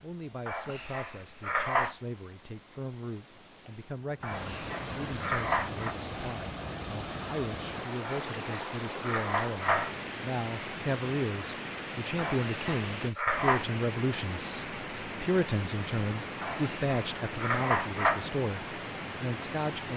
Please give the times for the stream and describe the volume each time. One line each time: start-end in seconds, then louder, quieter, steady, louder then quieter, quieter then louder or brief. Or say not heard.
0.0-19.9 louder.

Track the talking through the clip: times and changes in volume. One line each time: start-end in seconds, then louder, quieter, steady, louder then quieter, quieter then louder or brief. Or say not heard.
0.0-19.9 louder.